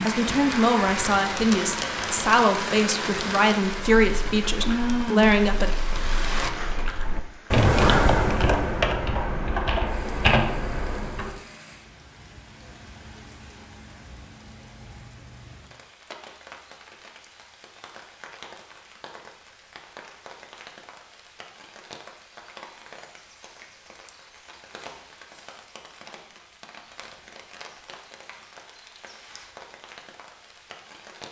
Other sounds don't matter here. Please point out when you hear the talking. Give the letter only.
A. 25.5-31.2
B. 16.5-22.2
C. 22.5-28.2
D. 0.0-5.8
D.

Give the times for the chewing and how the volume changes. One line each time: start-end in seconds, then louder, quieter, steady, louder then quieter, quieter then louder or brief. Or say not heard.
not heard.